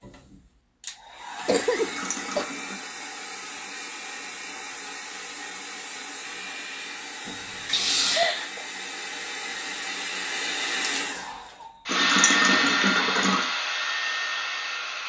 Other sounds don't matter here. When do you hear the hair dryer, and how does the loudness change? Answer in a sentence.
You can hear the hair dryer from 0.0 to 15.0 s, getting louder.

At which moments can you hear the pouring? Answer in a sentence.
You can hear the pouring from 1.8 to 2.8 s, from 7.2 to 8.3 s and from 11.8 to 13.4 s.